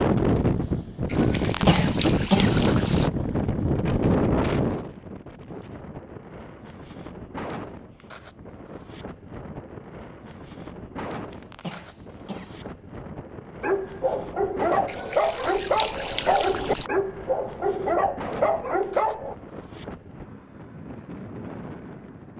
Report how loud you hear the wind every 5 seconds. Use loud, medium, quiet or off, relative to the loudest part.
loud, quiet, quiet, quiet, quiet.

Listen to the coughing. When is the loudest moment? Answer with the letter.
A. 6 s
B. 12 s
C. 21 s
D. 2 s
D.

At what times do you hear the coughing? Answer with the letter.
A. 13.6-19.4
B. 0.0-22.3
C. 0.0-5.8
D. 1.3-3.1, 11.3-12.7
D.